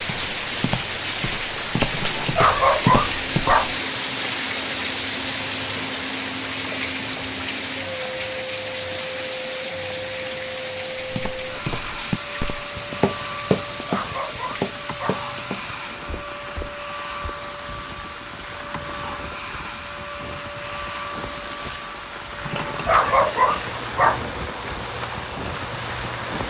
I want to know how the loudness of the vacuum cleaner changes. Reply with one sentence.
The loudness of the vacuum cleaner stays about the same.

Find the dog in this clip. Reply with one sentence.
The dog can be heard from 1.9 to 3.8 s, from 13.6 to 15.2 s and from 22.4 to 24.2 s.